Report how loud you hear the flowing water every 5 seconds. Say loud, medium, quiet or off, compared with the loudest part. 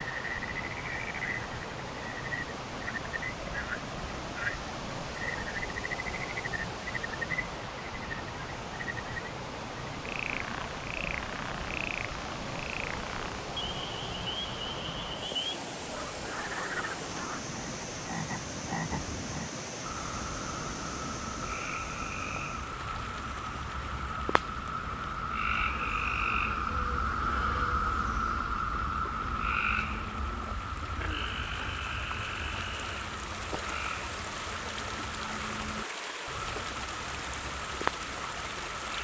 loud, loud, loud, loud, loud, medium, loud, loud.